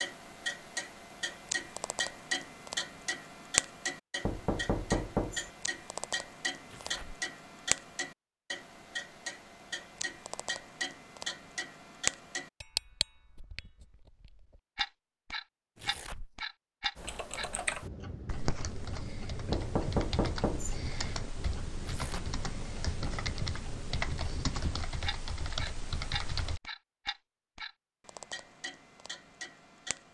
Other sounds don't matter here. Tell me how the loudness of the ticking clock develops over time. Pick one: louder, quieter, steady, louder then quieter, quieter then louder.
quieter.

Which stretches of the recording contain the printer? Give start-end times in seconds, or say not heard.
not heard.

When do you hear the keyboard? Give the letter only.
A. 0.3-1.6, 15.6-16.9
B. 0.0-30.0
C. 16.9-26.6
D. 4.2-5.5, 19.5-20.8
C.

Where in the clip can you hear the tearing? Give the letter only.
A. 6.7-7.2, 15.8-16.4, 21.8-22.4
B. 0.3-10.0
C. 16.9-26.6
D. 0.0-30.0
A.